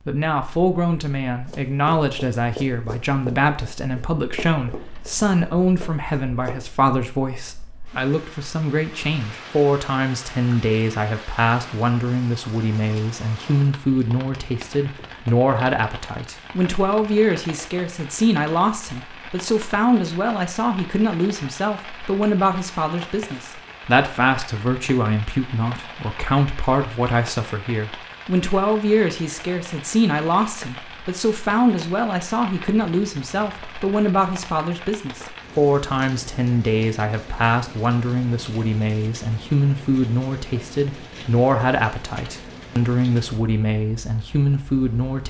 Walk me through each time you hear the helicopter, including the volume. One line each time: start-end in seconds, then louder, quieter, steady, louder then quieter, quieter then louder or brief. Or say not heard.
not heard.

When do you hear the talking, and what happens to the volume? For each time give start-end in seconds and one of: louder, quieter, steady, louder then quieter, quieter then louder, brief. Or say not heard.
0.1-45.2 steady.